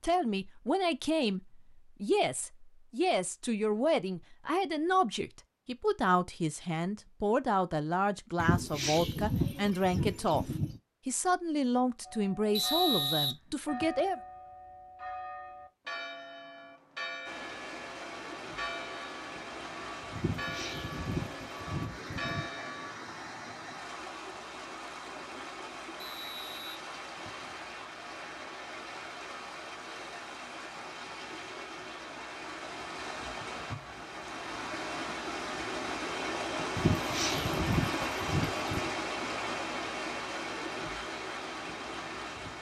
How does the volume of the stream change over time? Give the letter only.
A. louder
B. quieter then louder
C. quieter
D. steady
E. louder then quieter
A.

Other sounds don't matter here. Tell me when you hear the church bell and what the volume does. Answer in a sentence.
The church bell can be heard from 12.1 to 22.9 s, at a steady volume.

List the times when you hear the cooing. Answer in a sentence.
The cooing can be heard from 8.3 to 10.8 s, from 20.1 to 22.5 s and from 36.8 to 38.9 s.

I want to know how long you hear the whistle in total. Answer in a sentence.
The whistle can be heard for 3 seconds in total.